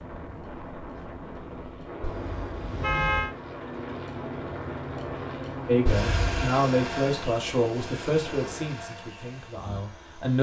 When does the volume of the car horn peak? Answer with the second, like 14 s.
3 s.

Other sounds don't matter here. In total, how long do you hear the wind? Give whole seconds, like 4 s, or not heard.
9 s.